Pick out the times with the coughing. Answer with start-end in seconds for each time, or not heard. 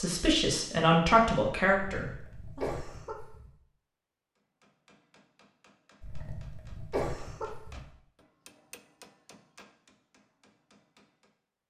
1.8-3.5, 6.0-7.8.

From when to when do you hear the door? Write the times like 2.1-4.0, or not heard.
not heard.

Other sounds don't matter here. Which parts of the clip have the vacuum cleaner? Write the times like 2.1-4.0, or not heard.
not heard.